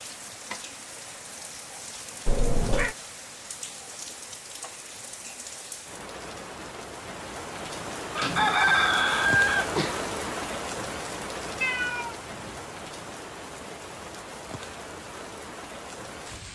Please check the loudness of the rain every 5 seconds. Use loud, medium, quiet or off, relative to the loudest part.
medium, loud, loud, medium.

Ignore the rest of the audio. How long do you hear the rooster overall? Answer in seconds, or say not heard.
2 s.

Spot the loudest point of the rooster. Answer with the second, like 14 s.
9 s.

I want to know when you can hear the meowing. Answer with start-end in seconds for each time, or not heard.
2.2-3.0, 11.6-12.6.